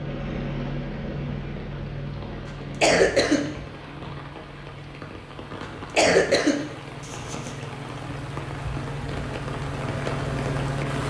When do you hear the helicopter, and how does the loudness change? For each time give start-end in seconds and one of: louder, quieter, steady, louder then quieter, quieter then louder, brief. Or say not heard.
0.0-11.0 quieter then louder.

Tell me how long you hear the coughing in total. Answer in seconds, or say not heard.
3 s.